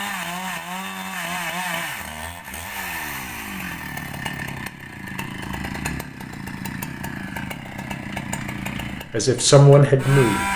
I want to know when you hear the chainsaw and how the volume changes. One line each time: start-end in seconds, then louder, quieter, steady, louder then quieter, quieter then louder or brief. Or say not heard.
0.0-10.5 steady.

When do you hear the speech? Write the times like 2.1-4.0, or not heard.
8.8-10.5.